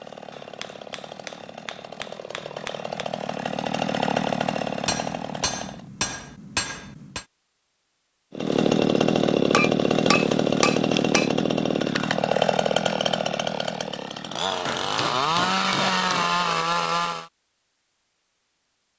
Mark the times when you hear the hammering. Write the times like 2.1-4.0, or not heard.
0.3-3.0, 4.8-7.2, 9.5-11.3, 14.7-16.4.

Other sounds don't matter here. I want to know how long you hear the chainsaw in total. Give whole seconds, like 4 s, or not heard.
15 s.